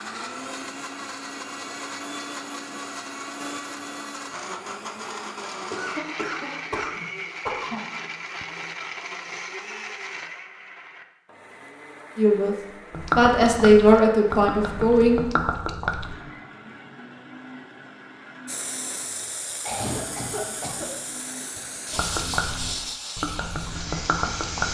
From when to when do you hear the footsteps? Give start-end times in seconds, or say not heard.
not heard.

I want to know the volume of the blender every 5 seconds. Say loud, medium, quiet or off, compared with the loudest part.
loud, loud, medium, medium, medium.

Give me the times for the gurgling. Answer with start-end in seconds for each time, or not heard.
12.9-16.2, 21.9-24.6.